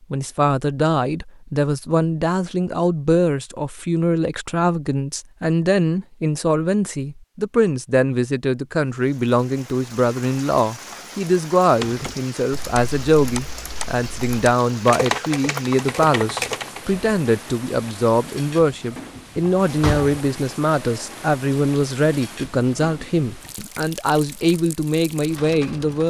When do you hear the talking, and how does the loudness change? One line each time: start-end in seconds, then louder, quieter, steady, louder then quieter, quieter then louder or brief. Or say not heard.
0.1-26.0 steady.